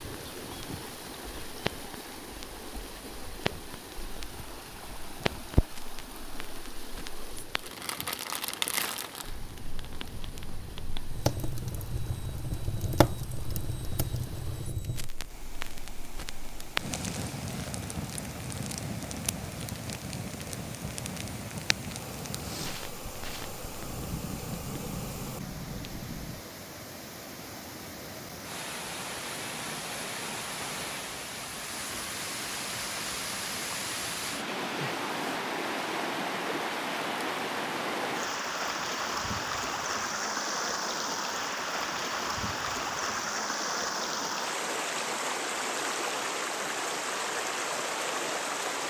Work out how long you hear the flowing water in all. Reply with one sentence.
You can hear the flowing water for 49 seconds altogether.